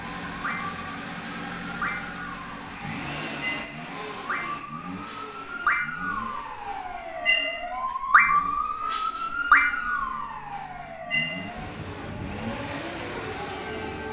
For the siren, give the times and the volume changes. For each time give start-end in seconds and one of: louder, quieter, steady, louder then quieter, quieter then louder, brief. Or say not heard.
0.2-14.0 louder then quieter.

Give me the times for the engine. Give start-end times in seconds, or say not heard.
0.0-14.0.